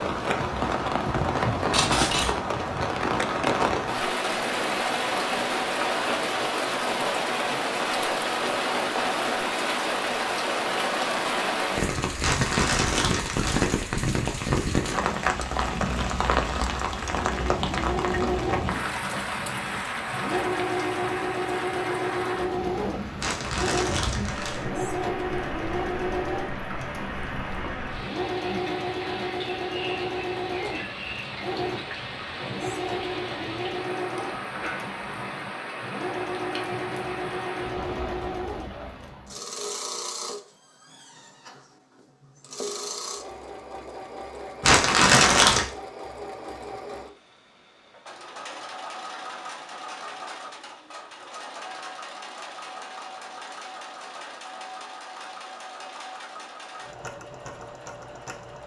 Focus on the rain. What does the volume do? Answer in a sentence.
The loudness of the rain goes down.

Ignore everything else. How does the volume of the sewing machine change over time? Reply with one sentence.
The volume of the sewing machine goes down.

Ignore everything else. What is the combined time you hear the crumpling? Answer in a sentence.
You can hear the crumpling for 4 seconds altogether.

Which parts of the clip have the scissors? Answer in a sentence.
You can hear the scissors from 1.7 to 2.4 s.